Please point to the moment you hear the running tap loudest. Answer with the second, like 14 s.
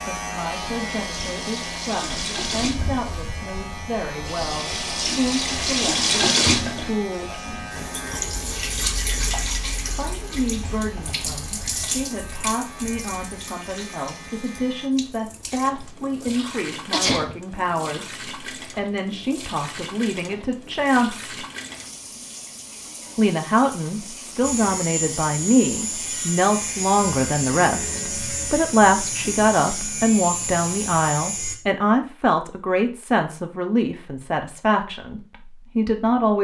6 s.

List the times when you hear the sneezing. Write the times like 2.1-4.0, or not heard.
15.8-17.4.